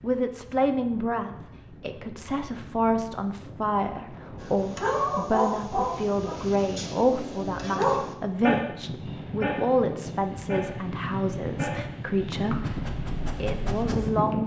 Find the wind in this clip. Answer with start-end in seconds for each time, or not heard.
0.0-14.4.